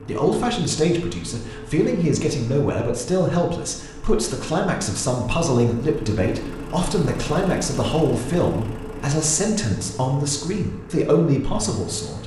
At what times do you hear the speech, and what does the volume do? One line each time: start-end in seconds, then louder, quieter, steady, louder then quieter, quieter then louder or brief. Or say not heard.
0.1-12.2 steady.